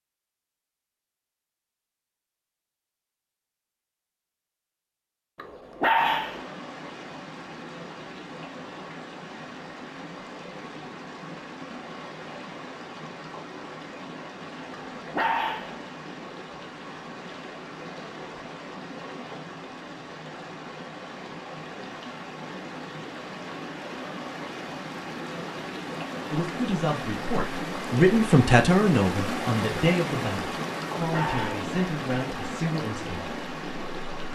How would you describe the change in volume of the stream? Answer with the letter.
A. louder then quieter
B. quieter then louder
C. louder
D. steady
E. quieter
C.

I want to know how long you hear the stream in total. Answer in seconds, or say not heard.
28 s.